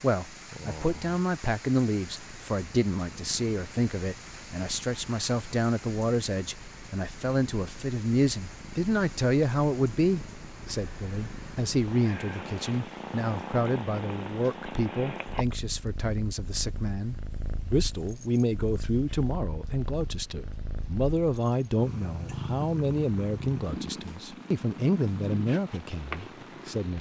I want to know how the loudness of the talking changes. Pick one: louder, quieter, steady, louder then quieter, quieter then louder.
steady.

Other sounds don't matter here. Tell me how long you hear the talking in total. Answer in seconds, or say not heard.
27 s.